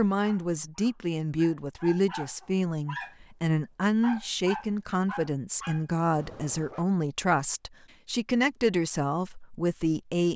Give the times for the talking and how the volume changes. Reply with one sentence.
You can hear the talking from 0.0 to 10.3 s, at a steady volume.